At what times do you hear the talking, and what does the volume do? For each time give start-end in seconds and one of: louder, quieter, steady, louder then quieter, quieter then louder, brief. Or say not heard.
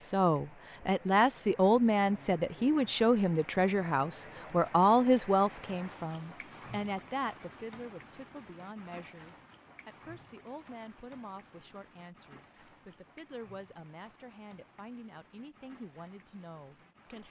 0.0-17.2 quieter.